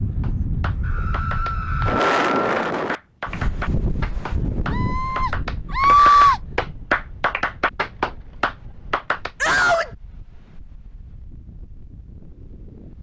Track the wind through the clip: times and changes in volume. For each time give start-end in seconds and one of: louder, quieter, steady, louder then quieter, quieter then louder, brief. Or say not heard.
0.0-12.9 quieter.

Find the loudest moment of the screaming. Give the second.
6 s.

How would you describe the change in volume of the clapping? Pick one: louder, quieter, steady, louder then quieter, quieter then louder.
louder.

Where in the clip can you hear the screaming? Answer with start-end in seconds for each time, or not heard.
0.8-2.7, 4.7-6.4, 9.4-9.9.